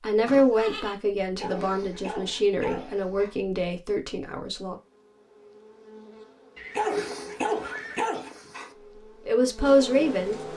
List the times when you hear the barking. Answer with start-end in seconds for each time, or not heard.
1.4-3.4, 6.8-8.7.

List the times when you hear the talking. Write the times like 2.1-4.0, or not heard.
0.0-4.8, 9.2-10.5.